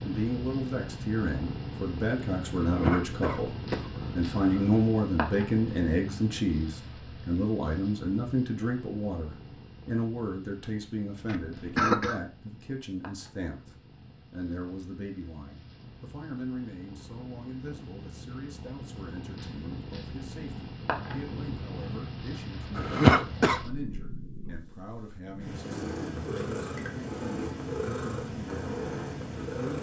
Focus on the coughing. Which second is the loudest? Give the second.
23 s.